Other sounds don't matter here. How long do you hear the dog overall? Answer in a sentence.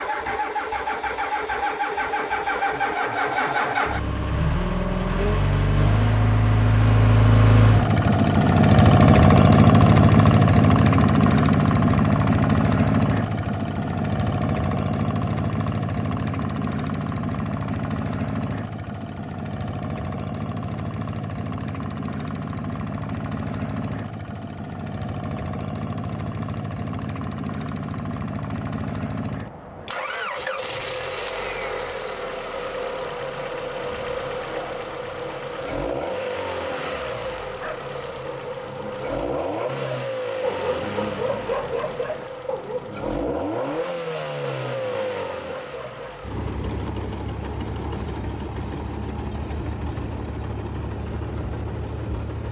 You can hear the dog for 9 seconds altogether.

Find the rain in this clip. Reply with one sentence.
You can't hear the rain here.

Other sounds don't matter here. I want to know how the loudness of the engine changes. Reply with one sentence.
The volume of the engine goes down.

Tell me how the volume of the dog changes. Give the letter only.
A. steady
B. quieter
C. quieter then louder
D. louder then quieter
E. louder
D.